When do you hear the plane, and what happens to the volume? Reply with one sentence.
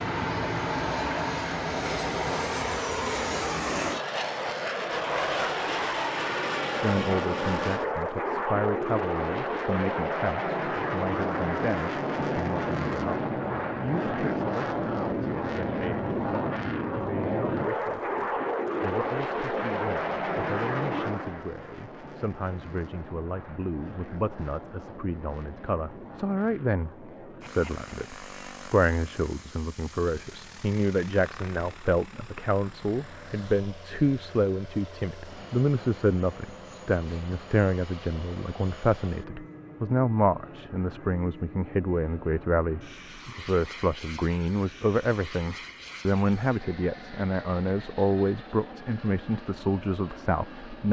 You can hear the plane from 0.0 to 50.8 s, getting quieter.